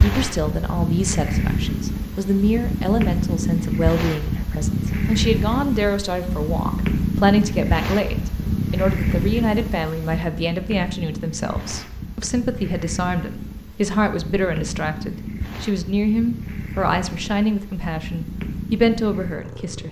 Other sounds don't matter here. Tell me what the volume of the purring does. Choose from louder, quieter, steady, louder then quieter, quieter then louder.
quieter.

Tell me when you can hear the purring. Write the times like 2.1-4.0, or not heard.
0.0-19.8.